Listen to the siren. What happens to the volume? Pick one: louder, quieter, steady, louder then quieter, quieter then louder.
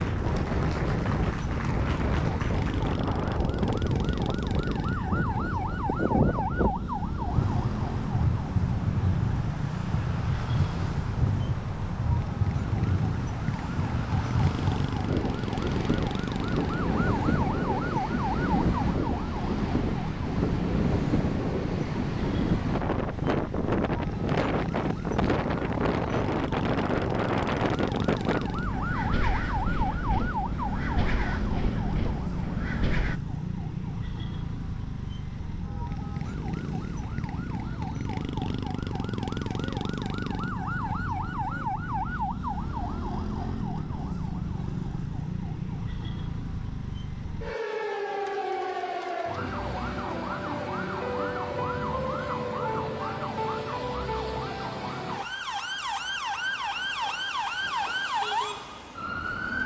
steady.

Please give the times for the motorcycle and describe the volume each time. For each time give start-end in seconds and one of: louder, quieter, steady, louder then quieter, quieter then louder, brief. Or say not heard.
not heard.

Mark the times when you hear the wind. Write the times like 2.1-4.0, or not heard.
0.0-33.2.